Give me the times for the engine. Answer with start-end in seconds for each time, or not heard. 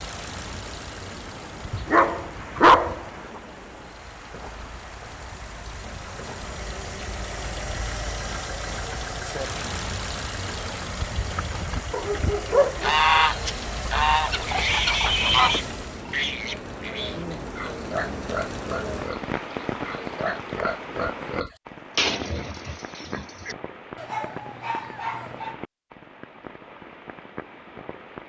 0.0-16.1.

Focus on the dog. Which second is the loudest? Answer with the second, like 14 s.
3 s.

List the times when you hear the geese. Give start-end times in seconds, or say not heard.
12.8-15.7.